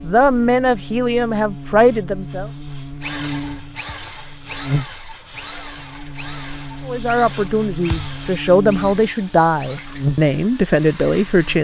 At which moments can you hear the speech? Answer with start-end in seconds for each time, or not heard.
0.0-2.5, 6.8-11.5.